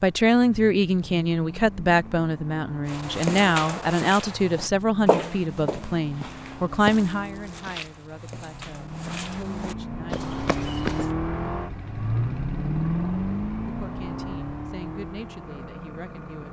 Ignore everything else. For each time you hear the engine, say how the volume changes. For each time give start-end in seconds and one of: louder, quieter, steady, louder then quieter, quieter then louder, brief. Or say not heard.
0.0-16.4 louder.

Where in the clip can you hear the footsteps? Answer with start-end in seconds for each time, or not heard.
2.9-11.1.